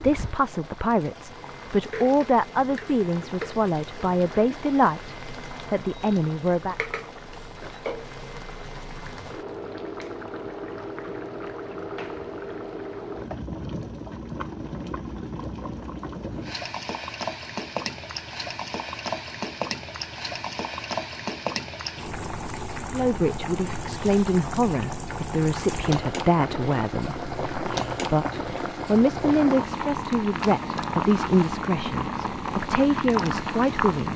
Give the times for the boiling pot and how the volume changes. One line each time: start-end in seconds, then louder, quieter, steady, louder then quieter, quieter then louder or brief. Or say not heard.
0.0-34.1 louder.